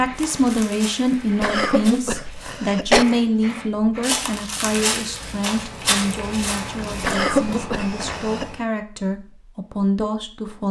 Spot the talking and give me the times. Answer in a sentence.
You can hear the talking from 0.0 to 10.6 s.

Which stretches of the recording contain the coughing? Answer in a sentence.
You can hear the coughing from 1.4 to 3.0 s and from 7.0 to 8.6 s.